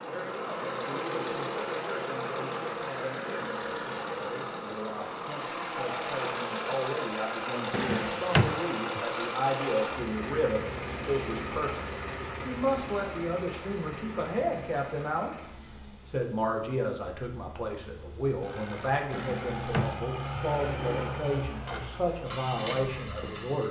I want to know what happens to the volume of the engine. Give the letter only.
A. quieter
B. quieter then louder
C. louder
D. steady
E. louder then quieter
B.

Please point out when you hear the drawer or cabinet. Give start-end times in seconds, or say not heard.
7.7-9.0, 19.1-21.1.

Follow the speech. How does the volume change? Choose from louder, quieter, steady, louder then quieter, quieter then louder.
louder.